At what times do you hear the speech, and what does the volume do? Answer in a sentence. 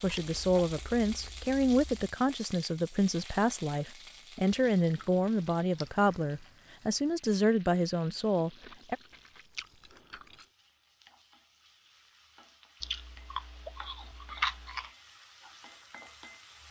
You can hear the speech from 0.0 to 8.9 s, at a steady volume.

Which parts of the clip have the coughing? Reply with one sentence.
You can't hear the coughing here.